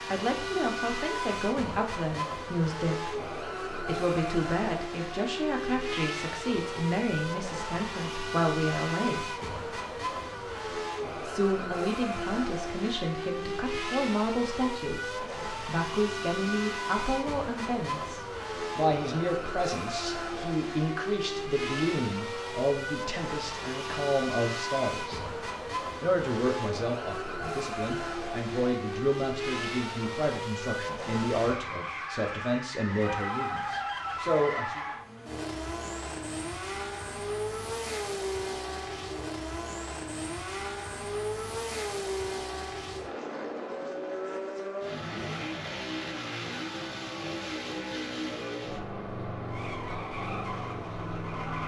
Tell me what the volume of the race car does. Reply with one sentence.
The loudness of the race car stays about the same.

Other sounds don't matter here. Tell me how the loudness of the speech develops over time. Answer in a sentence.
The loudness of the speech stays about the same.